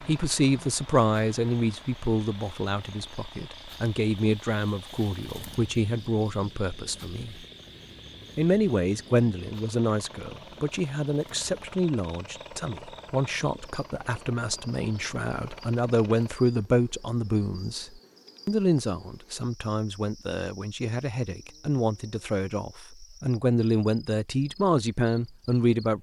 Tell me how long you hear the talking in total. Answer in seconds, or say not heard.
25 s.